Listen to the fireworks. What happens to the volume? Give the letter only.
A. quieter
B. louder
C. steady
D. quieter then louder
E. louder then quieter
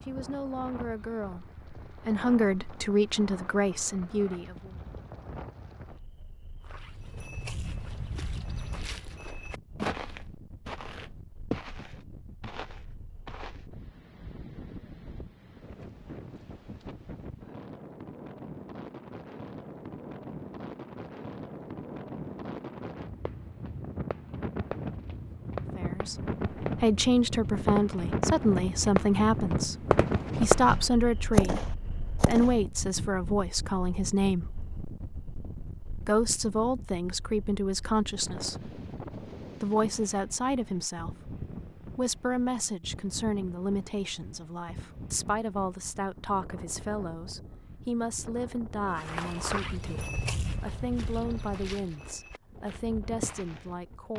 B.